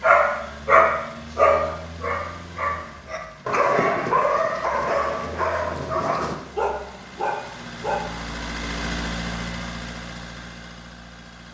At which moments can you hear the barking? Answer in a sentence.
The barking can be heard from 0.0 to 8.1 s.